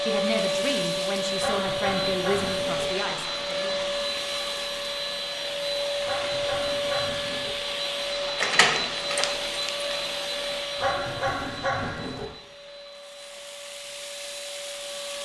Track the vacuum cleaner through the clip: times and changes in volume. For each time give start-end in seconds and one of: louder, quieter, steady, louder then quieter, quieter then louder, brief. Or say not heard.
0.0-15.1 quieter.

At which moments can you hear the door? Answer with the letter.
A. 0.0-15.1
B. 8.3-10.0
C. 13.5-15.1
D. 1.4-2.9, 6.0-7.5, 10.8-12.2
B.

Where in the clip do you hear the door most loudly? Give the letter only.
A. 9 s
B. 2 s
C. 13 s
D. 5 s
A.